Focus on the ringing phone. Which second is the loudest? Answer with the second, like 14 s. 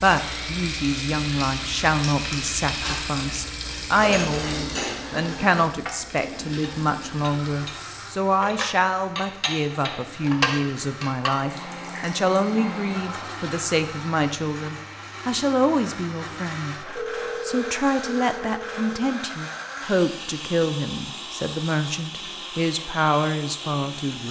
17 s.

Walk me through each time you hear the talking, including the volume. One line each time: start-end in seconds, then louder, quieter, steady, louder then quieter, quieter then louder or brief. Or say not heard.
0.0-24.2 steady.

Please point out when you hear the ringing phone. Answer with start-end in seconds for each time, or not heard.
16.9-18.9.